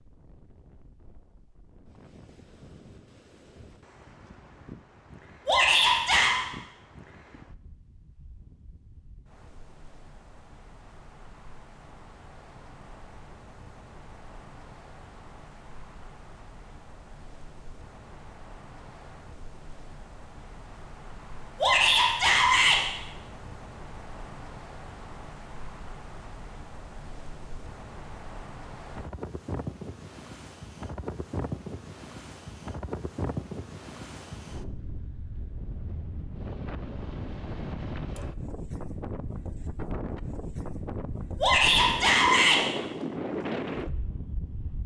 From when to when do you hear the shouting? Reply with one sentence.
The shouting can be heard from 5.5 to 6.3 s, from 21.6 to 22.8 s and from 41.4 to 42.6 s.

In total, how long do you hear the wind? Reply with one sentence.
The wind can be heard for 45 seconds in total.